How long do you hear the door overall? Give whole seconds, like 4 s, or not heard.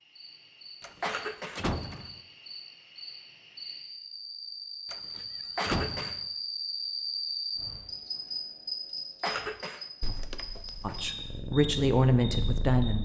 4 s.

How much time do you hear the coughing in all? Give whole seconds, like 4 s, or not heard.
2 s.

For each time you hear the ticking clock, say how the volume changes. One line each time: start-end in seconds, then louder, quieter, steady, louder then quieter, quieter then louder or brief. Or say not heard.
not heard.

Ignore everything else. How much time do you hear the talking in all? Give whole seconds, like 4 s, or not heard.
2 s.